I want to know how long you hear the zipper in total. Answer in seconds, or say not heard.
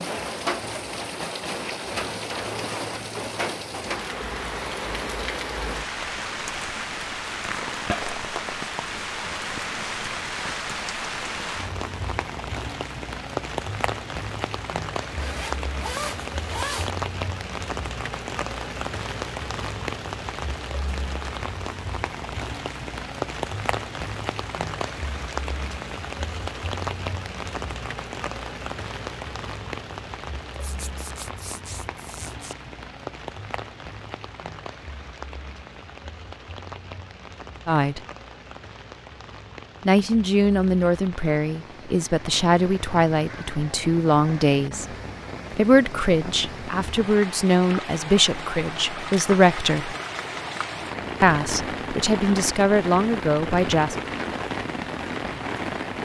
4 s.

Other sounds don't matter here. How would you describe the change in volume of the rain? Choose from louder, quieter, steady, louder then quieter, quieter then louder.
quieter then louder.